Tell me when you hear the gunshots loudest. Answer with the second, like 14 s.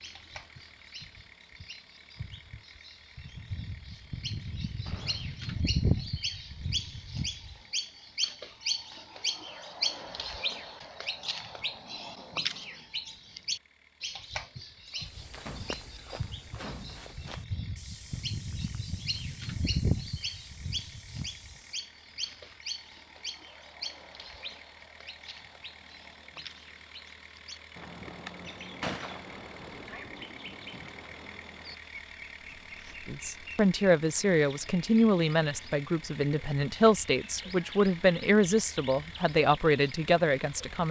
29 s.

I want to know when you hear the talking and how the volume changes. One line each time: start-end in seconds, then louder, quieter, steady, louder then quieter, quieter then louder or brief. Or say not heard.
33.0-40.8 steady.